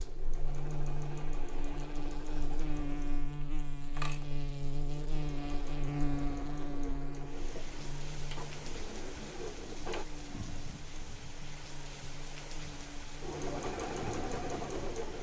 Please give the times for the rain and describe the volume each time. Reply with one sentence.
You can hear the rain from 7.2 to 15.1 s, at a steady volume.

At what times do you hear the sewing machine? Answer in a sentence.
You can hear the sewing machine from 0.0 to 10.1 s and from 13.2 to 15.1 s.